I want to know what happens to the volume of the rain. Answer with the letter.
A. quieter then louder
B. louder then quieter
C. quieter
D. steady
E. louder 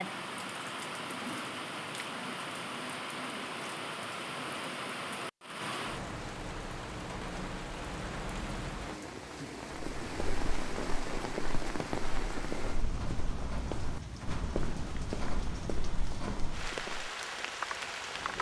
D.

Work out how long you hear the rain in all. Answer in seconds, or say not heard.
18 s.